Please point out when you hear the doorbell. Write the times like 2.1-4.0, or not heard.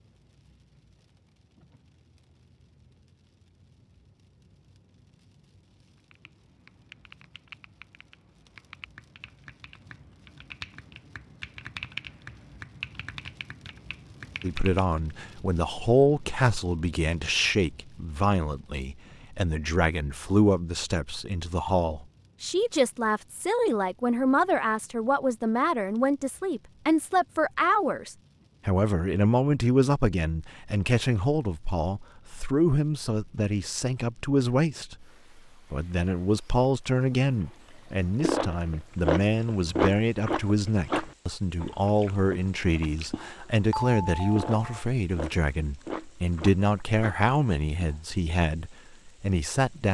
43.7-44.9.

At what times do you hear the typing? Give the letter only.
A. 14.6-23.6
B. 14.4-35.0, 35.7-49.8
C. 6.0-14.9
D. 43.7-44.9
C.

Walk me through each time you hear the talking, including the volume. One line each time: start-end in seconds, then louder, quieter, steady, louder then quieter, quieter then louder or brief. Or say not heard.
14.4-35.0 steady
35.7-49.8 steady.